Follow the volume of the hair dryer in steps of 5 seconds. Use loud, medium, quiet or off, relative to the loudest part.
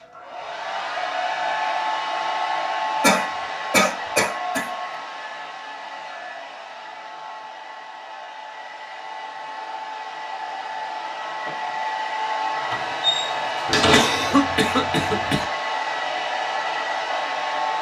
loud, medium, loud, loud.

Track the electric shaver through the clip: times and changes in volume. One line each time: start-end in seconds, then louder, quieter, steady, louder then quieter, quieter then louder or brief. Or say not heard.
not heard.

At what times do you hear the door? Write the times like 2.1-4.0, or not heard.
12.7-14.3.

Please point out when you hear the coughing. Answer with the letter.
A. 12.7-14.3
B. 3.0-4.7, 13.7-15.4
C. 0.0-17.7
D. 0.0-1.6
B.